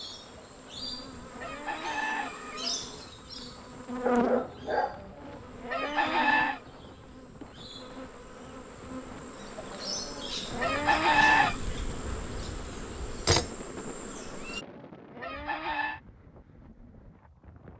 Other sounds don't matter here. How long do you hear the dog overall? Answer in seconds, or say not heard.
2 s.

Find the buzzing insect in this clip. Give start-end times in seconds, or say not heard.
0.0-14.7.